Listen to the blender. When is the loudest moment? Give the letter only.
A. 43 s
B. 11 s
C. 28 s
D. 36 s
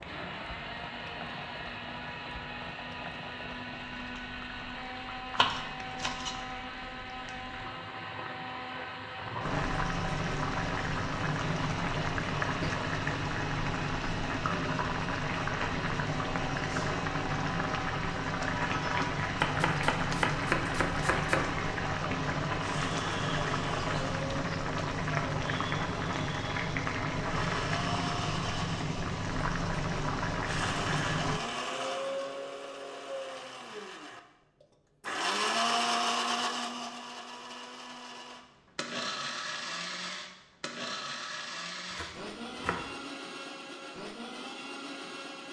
D.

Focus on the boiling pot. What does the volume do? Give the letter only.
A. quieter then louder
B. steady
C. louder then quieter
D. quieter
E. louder
E.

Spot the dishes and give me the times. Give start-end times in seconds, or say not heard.
not heard.